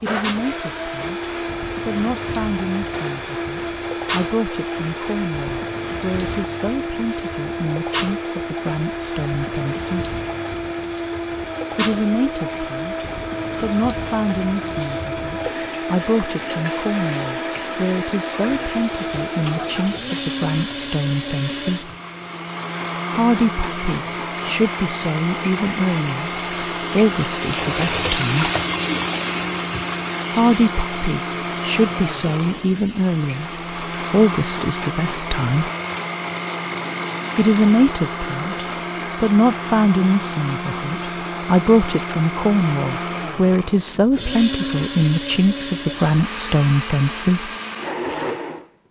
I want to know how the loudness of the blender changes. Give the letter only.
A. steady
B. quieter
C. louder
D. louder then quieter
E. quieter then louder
A.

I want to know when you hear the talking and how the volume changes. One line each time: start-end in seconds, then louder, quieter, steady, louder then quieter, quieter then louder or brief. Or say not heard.
0.0-10.2 steady
11.8-21.9 steady
23.1-28.5 louder then quieter
30.3-35.7 louder then quieter
37.4-47.5 steady.